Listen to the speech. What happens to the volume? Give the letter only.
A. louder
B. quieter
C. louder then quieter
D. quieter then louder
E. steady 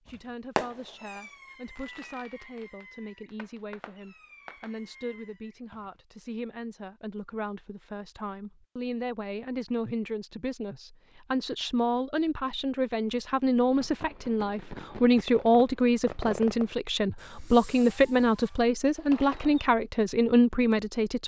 A.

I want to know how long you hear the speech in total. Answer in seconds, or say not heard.
21 s.